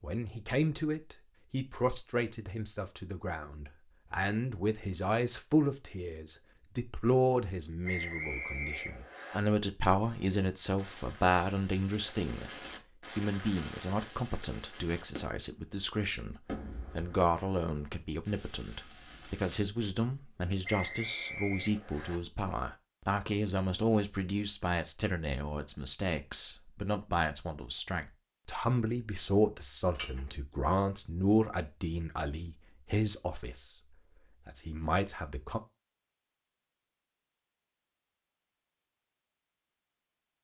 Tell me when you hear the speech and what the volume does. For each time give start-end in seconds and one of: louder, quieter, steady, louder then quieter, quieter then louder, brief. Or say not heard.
0.0-35.6 steady.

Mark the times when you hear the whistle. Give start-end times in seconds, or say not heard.
7.8-9.4, 20.6-22.2.